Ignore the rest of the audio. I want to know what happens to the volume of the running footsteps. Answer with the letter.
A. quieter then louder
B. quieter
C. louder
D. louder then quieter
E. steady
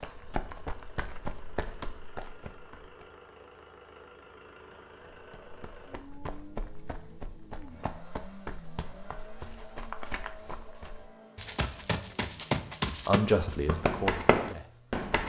A.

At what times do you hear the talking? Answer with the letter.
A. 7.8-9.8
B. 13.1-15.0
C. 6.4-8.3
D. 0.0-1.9
B.